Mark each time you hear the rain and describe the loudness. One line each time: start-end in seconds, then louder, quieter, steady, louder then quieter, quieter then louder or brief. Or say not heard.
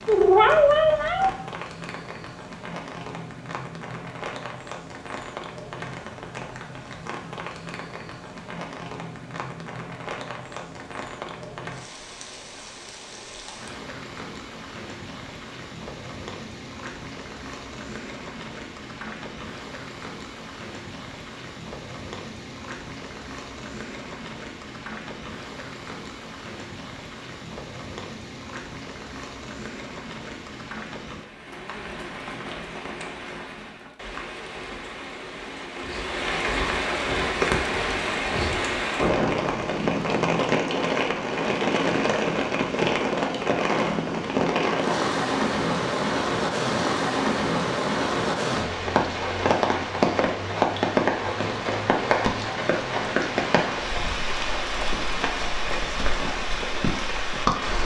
0.0-57.8 louder.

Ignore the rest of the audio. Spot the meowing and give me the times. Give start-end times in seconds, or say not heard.
0.1-1.3.